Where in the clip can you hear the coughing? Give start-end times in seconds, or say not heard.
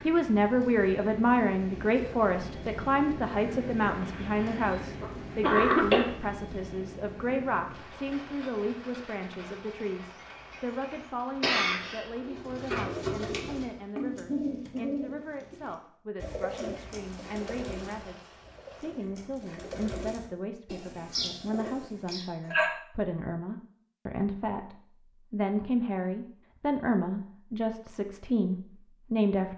3.9-6.0, 11.4-12.1, 22.1-22.7.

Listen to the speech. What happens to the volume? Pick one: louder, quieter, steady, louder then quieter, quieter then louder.
quieter then louder.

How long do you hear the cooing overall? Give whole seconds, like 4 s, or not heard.
10 s.